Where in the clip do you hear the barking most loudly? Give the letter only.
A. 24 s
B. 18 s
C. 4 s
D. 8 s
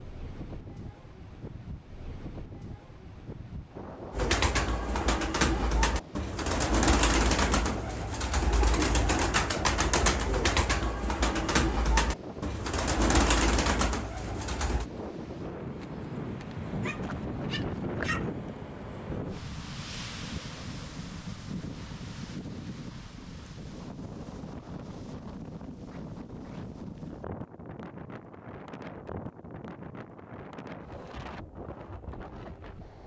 B.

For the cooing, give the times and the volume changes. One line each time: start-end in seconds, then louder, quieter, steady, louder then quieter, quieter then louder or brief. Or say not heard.
4.1-14.9 steady.